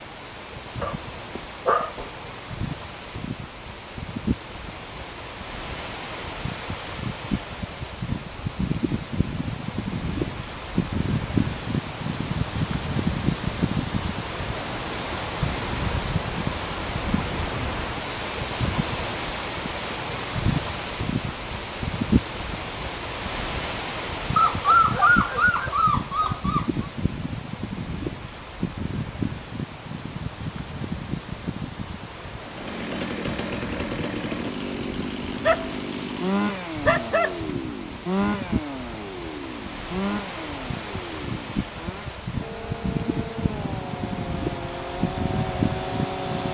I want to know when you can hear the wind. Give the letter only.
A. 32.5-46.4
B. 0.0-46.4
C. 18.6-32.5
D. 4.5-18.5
B.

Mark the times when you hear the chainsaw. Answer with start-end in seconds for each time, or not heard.
32.5-46.4.